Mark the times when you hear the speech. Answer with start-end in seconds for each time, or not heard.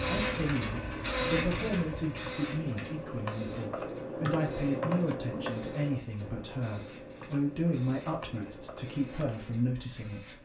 0.0-10.4.